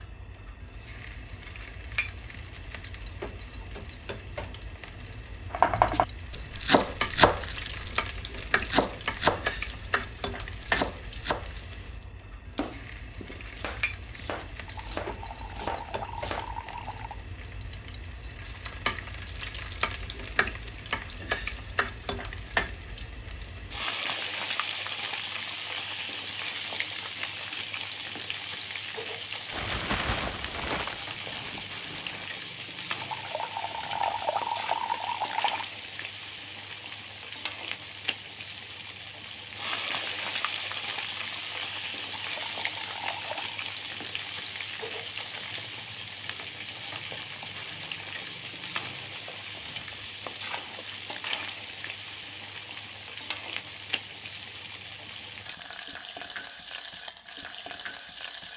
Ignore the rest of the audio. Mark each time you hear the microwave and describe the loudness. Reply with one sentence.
You can't hear the microwave here.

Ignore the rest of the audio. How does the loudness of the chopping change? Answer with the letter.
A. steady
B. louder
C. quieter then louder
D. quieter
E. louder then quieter
D.